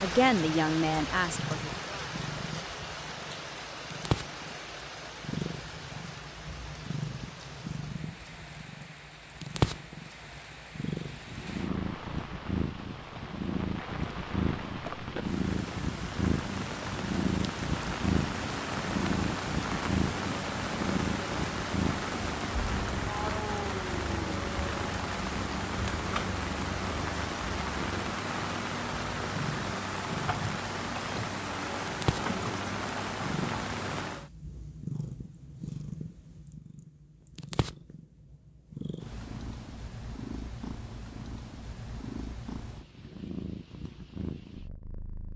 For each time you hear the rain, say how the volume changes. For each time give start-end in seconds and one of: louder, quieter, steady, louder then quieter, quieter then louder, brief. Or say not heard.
0.0-34.3 quieter then louder.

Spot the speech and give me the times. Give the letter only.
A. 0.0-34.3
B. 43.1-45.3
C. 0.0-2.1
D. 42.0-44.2
C.